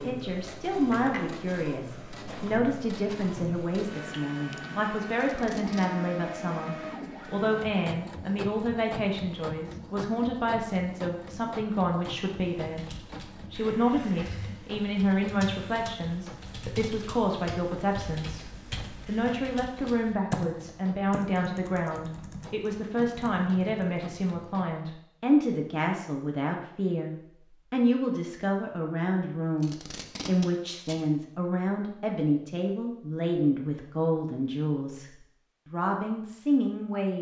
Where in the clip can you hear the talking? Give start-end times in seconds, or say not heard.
0.0-18.4, 19.1-37.1.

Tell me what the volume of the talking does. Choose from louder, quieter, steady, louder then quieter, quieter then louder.
steady.